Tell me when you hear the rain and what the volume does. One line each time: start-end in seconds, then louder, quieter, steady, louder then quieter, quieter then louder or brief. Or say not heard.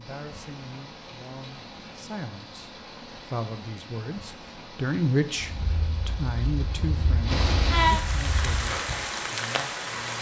0.0-10.1 louder.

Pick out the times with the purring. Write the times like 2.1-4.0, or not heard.
5.3-8.7.